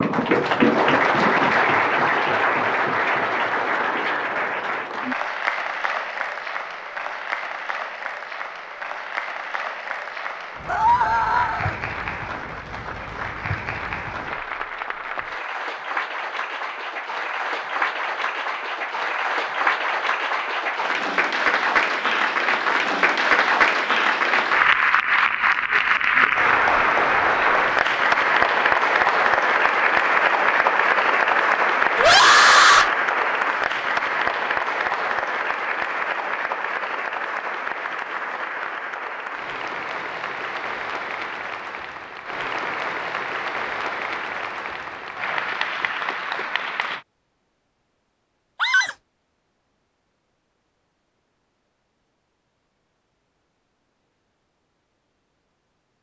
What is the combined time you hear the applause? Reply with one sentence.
You can hear the applause for 47 seconds altogether.